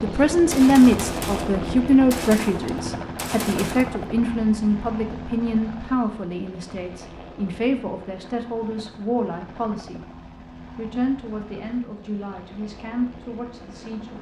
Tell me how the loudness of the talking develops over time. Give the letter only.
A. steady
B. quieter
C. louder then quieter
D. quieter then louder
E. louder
B.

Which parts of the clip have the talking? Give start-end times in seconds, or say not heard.
0.0-10.0, 10.8-14.1.